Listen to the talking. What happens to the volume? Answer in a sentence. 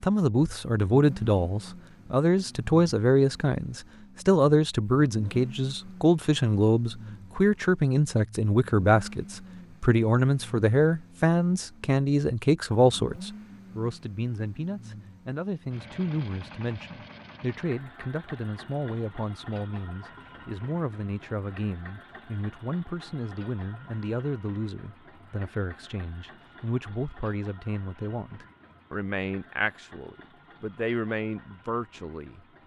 The loudness of the talking goes down.